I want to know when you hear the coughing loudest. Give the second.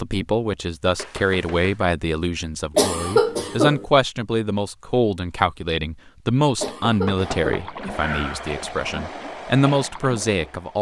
3 s.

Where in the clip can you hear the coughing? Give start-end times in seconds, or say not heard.
2.8-3.9, 6.6-7.7.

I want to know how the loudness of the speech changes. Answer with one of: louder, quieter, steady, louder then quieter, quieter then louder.
steady.